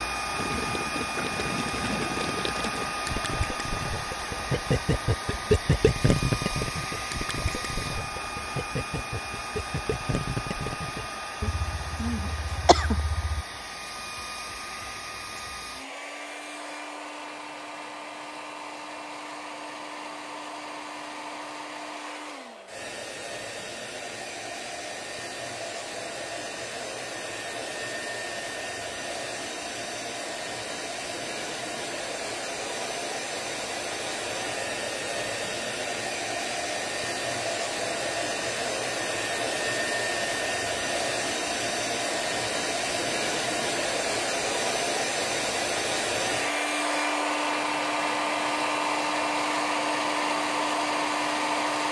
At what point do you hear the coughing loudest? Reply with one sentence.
The loudest moment of the coughing is at 13 seconds.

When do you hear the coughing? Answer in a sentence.
You can hear the coughing from 11.4 to 13.4 s.